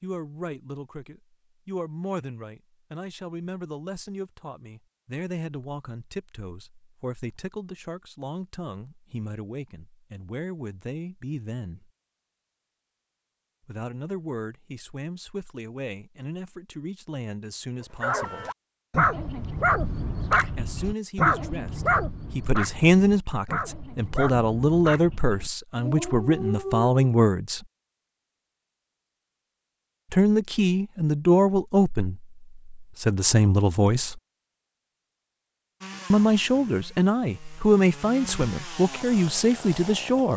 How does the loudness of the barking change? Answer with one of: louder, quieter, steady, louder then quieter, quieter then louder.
quieter.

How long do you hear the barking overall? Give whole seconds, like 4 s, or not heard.
9 s.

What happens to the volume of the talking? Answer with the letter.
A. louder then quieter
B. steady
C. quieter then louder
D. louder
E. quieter
D.